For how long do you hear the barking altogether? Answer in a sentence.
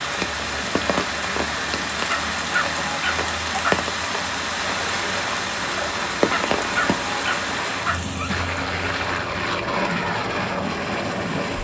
You can hear the barking for 4 seconds altogether.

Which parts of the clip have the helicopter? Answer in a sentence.
You can hear the helicopter from 4.5 to 11.5 s.